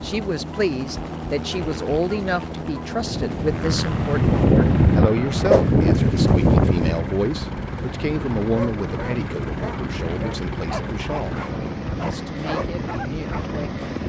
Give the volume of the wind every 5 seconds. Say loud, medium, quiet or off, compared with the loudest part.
loud, loud, quiet.